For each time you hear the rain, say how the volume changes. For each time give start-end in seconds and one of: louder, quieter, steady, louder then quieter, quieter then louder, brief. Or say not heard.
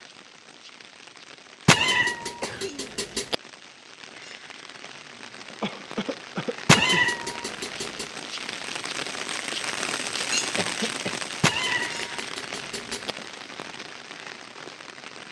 0.0-15.2 louder then quieter.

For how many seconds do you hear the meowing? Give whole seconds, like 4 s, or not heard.
5 s.